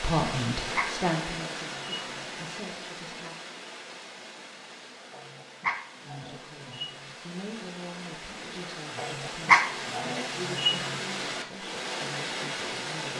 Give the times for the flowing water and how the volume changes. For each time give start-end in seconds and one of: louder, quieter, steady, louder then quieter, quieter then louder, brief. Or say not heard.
0.0-13.1 quieter then louder.